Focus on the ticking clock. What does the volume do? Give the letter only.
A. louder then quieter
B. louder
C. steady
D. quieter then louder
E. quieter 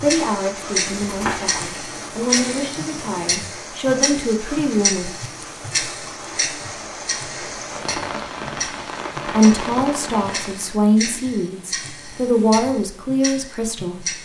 E.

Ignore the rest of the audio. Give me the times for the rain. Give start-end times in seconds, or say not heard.
0.0-10.8.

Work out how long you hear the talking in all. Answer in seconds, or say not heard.
10 s.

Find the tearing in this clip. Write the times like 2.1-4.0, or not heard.
1.0-1.9.